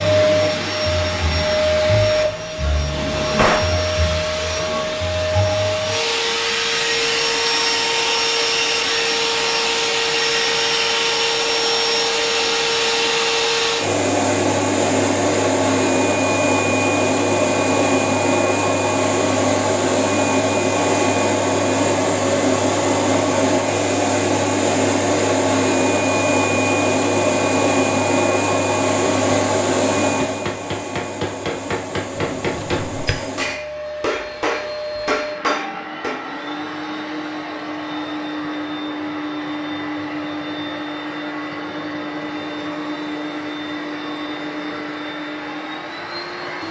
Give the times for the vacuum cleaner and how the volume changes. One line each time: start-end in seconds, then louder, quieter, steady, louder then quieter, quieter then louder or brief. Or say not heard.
0.0-46.6 quieter.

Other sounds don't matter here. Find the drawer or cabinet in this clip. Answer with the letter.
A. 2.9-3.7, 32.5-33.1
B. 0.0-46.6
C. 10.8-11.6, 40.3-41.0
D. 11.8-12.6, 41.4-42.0
A.